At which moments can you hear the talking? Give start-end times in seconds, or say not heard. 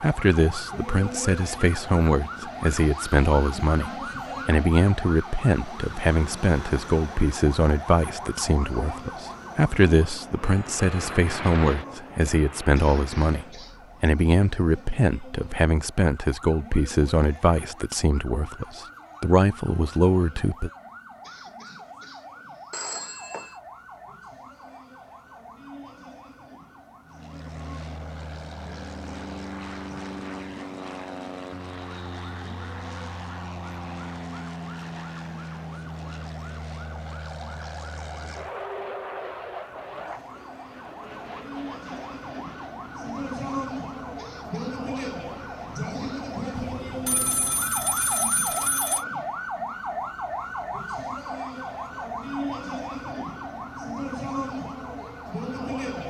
0.0-20.7.